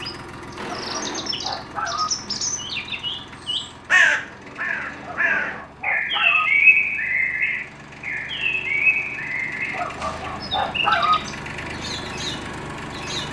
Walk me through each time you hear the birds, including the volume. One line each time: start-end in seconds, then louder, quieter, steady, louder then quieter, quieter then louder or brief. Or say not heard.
0.0-13.2 louder then quieter.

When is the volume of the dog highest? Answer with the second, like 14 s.
11 s.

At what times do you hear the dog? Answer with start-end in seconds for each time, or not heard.
0.8-2.1, 5.0-6.5, 9.7-11.2.